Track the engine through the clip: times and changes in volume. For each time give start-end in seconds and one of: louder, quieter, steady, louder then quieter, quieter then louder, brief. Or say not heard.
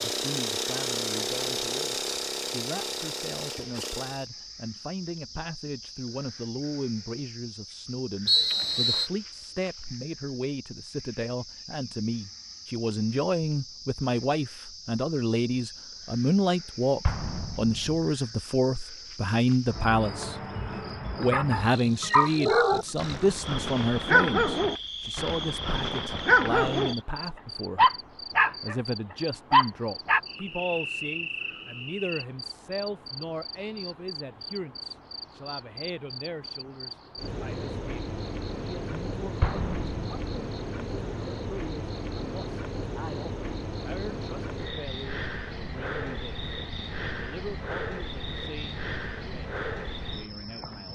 0.0-4.2 quieter.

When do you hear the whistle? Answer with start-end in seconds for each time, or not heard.
8.2-9.1.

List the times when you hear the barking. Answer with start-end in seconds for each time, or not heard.
21.3-26.9, 27.8-28.8, 29.5-30.2.